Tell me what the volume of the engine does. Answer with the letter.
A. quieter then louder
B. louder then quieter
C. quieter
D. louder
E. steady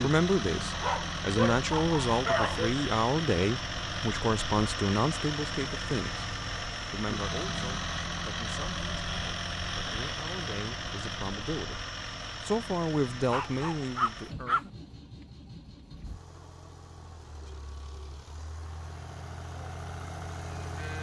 C.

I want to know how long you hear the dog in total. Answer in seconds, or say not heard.
3 s.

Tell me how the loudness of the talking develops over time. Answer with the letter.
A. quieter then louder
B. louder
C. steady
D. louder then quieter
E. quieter
A.